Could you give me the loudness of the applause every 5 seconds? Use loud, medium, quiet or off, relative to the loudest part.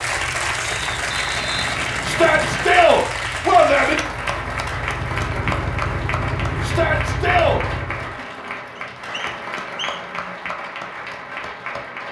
loud, loud, medium.